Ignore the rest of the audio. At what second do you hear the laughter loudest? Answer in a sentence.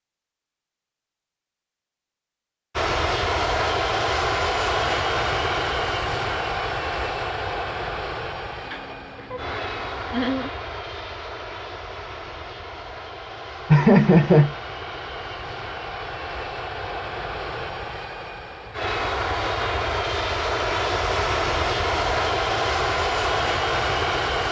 The loudest moment of the laughter is at 14 seconds.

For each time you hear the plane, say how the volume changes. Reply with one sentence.
The plane can be heard from 2.8 to 24.4 s, getting quieter then louder.